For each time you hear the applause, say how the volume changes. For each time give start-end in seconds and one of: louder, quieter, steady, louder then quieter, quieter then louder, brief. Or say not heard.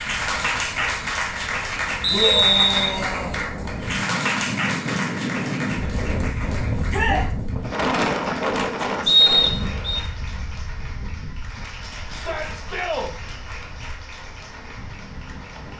0.0-15.7 quieter.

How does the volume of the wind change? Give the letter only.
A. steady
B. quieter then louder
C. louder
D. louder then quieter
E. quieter
D.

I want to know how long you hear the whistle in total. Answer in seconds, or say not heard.
2 s.